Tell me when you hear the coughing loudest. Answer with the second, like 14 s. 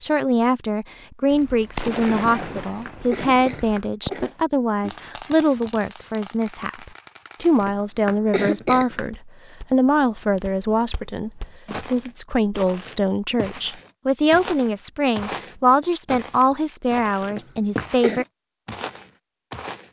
9 s.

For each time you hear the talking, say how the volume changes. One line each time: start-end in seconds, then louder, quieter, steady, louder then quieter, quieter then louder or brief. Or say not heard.
0.0-18.2 steady.